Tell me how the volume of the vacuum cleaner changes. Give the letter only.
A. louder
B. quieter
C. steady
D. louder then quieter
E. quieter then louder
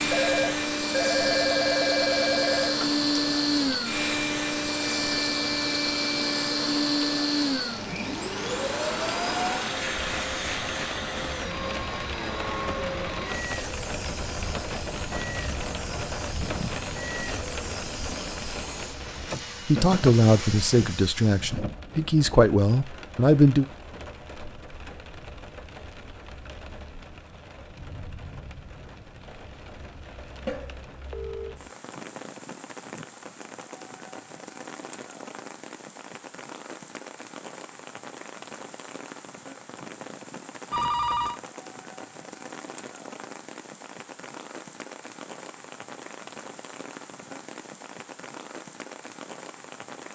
B.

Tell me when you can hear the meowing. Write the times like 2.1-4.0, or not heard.
not heard.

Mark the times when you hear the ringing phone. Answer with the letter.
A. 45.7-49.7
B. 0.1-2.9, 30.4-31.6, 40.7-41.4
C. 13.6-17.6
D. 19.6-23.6
B.